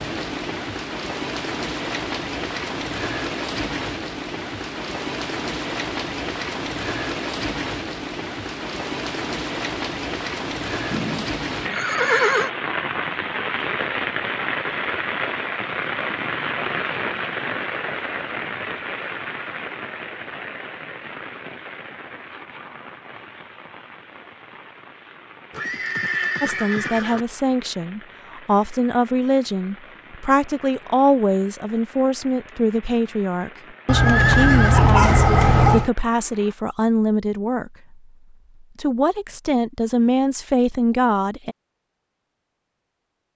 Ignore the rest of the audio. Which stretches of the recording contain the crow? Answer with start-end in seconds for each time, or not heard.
not heard.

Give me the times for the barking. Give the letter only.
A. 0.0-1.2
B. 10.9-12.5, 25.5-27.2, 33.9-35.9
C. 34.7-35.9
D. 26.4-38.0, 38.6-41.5
C.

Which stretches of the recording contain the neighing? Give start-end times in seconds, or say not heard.
10.9-12.5, 25.5-27.2, 33.9-35.9.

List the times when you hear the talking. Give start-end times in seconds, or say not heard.
26.4-38.0, 38.6-41.5.